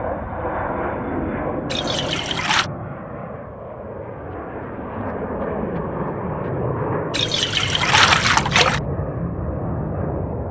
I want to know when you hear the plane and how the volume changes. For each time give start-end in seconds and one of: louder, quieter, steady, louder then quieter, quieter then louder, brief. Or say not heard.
0.0-10.4 quieter then louder.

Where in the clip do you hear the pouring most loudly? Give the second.
8 s.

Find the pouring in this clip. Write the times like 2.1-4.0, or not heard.
1.7-2.7, 7.1-8.8.